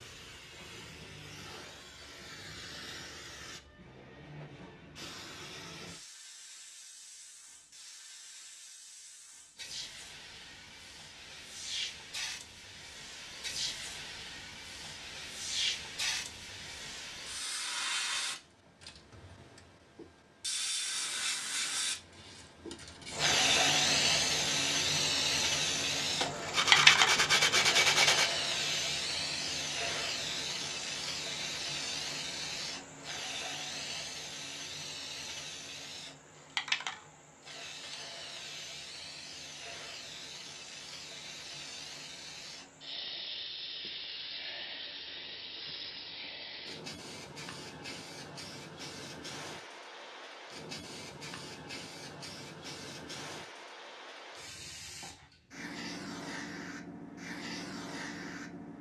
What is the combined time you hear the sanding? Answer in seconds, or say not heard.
2 s.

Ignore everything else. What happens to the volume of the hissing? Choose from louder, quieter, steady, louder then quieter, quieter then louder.
louder then quieter.